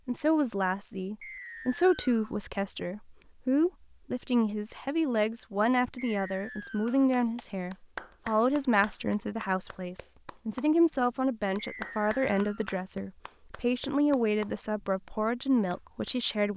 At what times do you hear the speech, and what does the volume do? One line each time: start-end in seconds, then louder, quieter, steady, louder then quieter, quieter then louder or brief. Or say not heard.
0.1-16.5 steady.